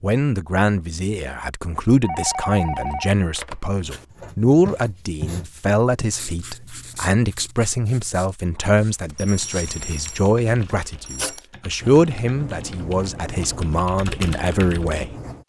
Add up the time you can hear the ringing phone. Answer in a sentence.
You can hear the ringing phone for 4 seconds altogether.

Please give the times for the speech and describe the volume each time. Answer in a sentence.
You can hear the speech from 0.0 to 15.1 s, at a steady volume.